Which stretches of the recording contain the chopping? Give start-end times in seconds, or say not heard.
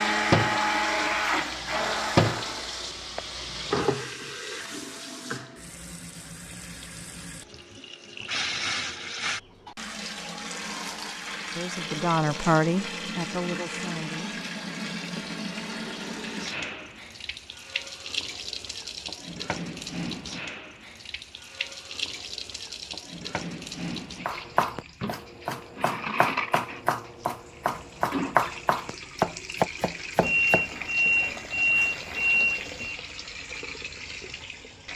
24.2-31.1.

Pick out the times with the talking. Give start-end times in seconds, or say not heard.
11.6-14.4.